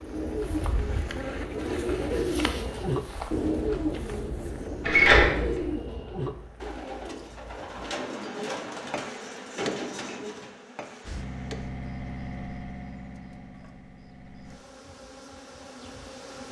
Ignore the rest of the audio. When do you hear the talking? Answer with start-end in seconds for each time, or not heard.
not heard.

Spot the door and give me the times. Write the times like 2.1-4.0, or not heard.
4.8-5.7.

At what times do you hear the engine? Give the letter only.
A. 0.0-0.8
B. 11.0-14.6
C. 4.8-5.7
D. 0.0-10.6
B.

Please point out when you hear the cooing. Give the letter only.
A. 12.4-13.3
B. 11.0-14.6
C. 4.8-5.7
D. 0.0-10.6
D.